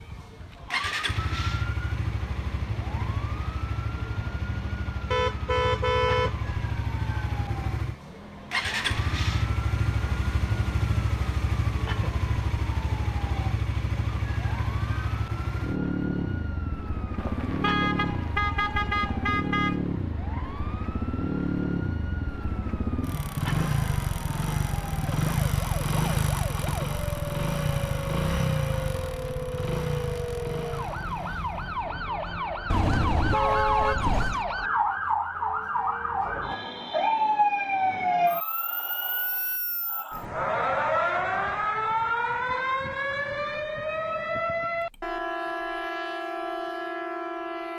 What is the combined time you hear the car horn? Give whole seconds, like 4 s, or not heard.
6 s.